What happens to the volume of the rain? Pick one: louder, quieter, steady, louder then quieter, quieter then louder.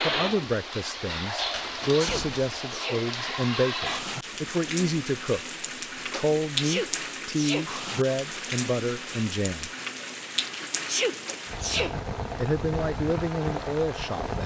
steady.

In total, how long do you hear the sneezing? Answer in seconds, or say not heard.
3 s.